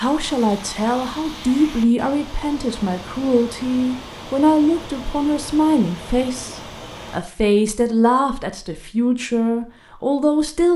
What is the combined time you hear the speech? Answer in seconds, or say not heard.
11 s.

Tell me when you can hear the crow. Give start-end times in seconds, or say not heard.
not heard.